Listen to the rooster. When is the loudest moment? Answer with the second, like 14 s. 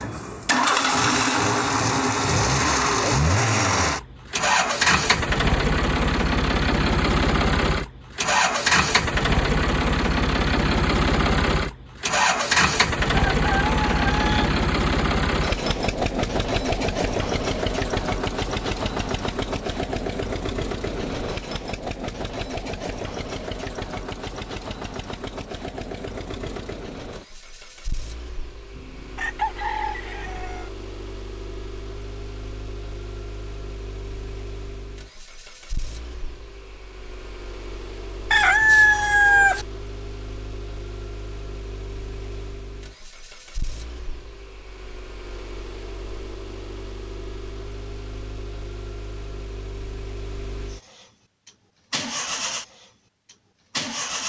39 s.